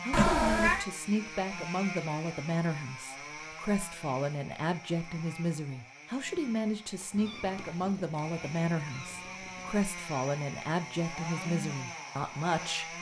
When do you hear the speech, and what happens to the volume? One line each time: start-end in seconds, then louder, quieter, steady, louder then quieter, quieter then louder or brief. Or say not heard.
0.0-12.9 steady.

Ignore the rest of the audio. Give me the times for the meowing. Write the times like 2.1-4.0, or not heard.
0.1-0.8, 7.2-9.8.